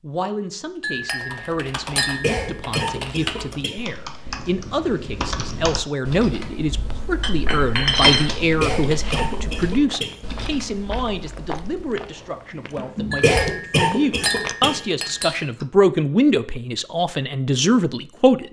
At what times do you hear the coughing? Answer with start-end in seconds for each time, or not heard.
2.2-3.8, 8.6-10.2, 13.2-14.8.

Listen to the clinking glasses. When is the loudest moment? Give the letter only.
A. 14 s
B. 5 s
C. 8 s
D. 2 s
C.